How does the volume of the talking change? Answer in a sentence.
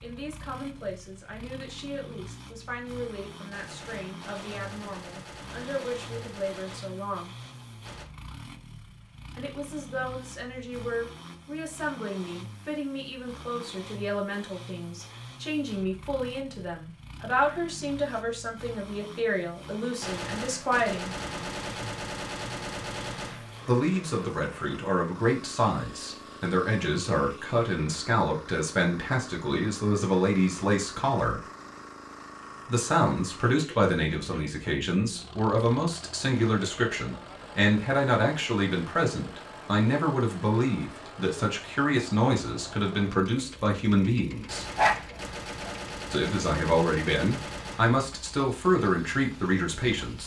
The volume of the talking goes up.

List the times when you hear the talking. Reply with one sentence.
The talking can be heard from 0.0 to 7.3 s, from 9.3 to 21.1 s, from 23.6 to 31.4 s, from 32.6 to 44.6 s and from 46.1 to 50.2 s.